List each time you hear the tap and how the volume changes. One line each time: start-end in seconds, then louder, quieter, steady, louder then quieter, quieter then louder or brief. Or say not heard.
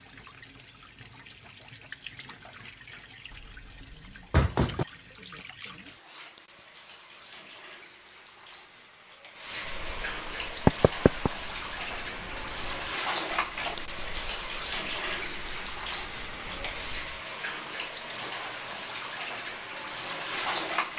0.0-20.9 louder.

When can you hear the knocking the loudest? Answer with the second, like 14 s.
11 s.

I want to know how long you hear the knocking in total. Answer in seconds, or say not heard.
2 s.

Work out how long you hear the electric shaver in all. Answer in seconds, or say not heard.
not heard.